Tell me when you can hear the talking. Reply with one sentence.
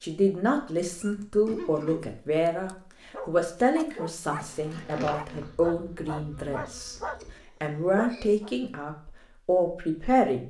The talking can be heard from 0.0 to 7.0 s and from 7.6 to 10.4 s.